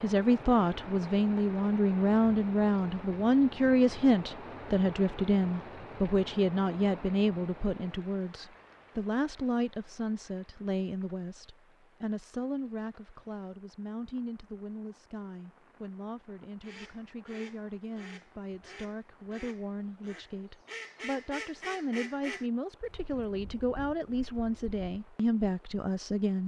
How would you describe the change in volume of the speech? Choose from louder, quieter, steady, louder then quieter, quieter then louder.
quieter then louder.